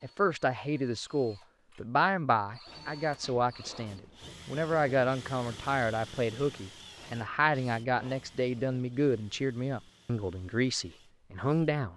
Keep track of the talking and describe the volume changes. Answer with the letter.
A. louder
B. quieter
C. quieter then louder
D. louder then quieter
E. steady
E.